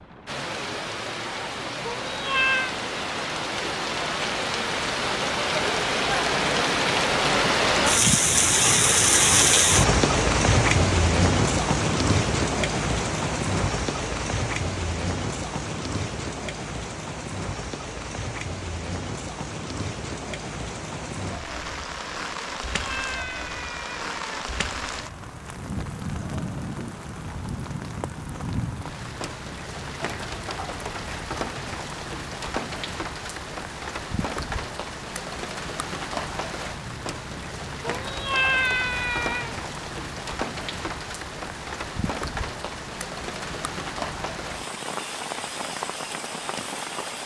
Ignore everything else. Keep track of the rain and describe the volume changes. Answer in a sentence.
The loudness of the rain goes down.